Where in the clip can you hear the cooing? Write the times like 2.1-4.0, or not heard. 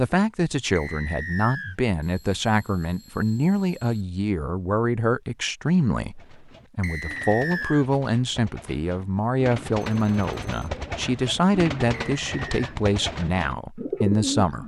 6.1-14.6.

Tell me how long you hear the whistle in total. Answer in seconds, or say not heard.
3 s.